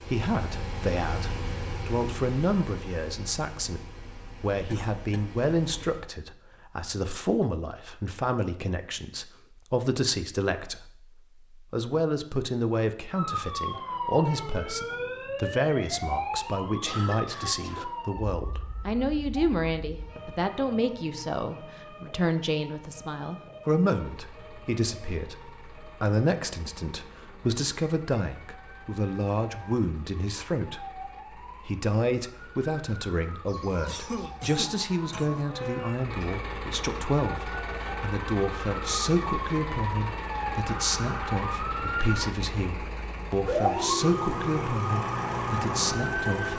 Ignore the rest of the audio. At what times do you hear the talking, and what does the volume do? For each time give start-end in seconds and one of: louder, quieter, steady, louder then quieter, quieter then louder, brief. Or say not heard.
0.0-46.5 steady.